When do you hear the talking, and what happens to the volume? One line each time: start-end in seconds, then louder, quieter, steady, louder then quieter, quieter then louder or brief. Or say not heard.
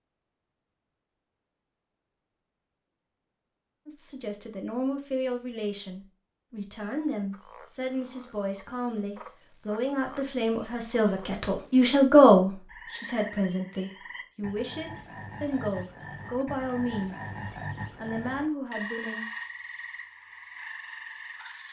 3.9-17.4 louder then quieter
17.9-19.2 brief.